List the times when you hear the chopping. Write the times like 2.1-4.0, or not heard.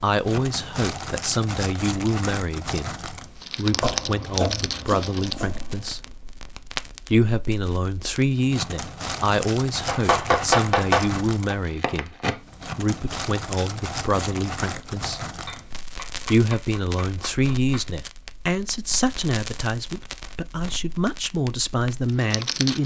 3.8-5.9, 9.8-11.6, 15.4-17.9.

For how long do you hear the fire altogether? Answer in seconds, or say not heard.
23 s.